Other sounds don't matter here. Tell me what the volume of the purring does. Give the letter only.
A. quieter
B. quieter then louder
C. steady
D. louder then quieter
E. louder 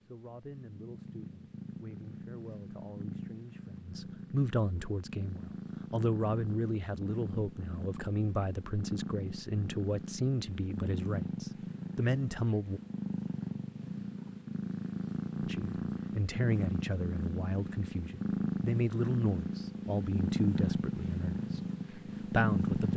E.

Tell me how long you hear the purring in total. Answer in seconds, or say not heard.
23 s.